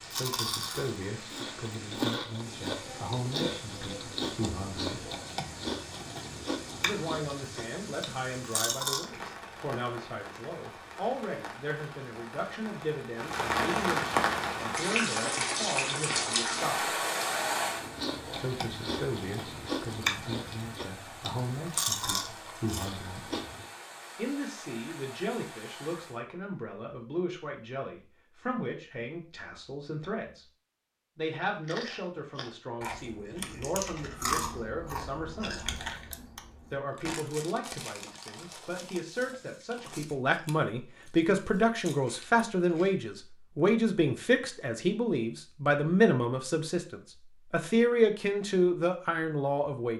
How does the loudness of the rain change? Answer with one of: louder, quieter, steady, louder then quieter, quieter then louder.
louder then quieter.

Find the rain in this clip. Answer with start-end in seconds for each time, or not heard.
0.0-26.2.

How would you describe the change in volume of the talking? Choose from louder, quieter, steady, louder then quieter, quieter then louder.
louder.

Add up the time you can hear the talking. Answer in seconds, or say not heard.
44 s.